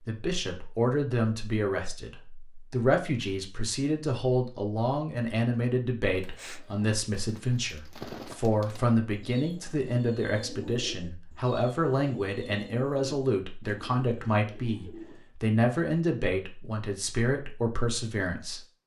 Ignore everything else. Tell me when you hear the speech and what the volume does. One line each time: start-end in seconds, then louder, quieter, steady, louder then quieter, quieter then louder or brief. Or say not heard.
0.1-18.6 steady.